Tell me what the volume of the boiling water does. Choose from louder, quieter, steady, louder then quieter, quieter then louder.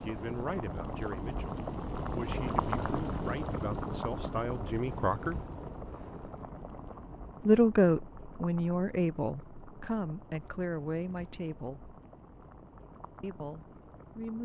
quieter.